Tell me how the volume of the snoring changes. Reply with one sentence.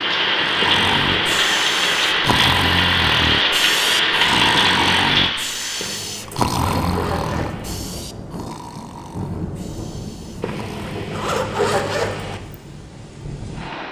The volume of the snoring goes down.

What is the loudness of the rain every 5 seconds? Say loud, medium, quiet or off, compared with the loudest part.
loud, medium, quiet.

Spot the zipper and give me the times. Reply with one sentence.
The zipper can be heard from 0.6 to 1.4 s, from 5.8 to 7.8 s and from 10.4 to 12.4 s.